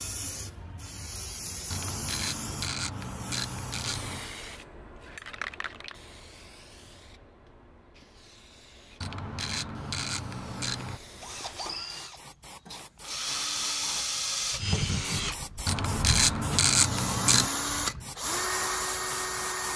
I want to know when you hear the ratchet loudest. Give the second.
17 s.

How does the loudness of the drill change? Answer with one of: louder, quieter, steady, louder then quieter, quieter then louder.
louder.